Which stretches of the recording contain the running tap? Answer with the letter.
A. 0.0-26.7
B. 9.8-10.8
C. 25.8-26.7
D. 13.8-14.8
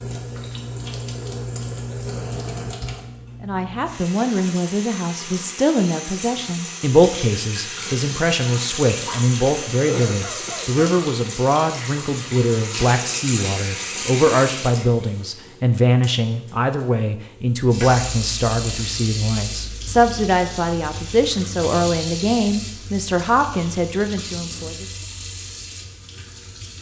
A.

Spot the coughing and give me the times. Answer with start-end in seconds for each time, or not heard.
9.8-10.8.